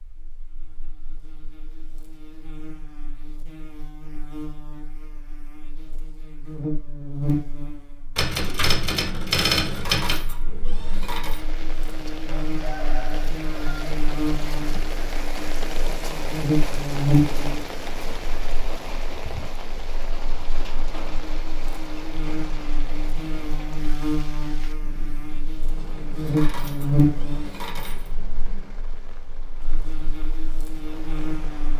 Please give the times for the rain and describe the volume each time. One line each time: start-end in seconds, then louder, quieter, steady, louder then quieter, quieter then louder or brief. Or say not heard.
11.2-31.7 quieter.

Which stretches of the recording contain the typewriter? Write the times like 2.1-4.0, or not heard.
8.2-10.2.